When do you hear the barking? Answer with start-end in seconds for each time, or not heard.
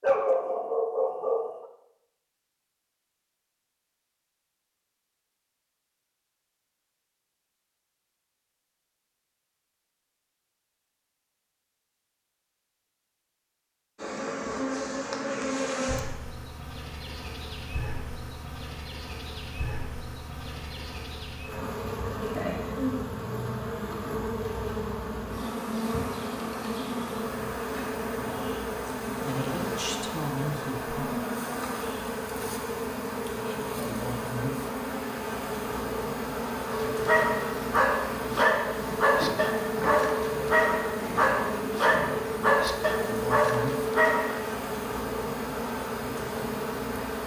0.0-1.6, 36.6-44.5.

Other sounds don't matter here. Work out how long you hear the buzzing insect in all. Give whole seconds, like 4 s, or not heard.
33 s.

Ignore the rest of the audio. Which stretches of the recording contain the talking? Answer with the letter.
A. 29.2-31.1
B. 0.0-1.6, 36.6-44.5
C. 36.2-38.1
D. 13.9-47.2
A.